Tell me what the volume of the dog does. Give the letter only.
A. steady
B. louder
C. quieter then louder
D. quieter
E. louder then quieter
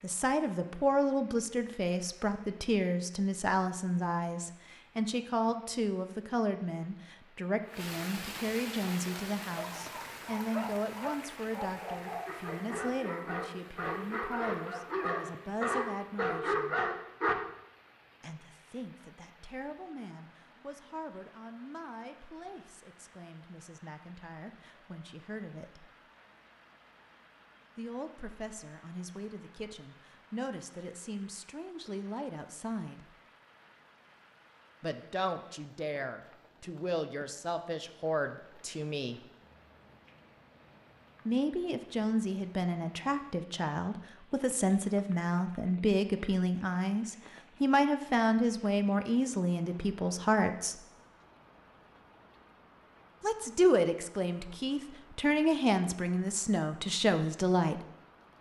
B.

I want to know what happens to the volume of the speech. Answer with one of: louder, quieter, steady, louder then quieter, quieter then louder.
quieter then louder.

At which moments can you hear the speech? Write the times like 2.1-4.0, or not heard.
0.0-16.8, 18.2-25.9, 27.8-33.0, 34.8-39.2, 41.2-50.8, 53.2-57.8.